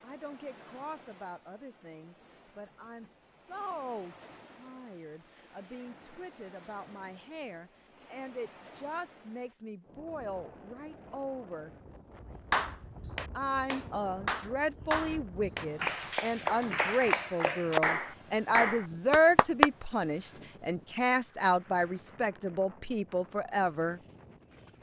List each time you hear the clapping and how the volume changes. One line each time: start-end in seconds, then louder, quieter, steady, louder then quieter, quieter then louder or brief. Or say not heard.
12.5-19.7 louder.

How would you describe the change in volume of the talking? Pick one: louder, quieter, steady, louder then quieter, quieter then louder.
louder.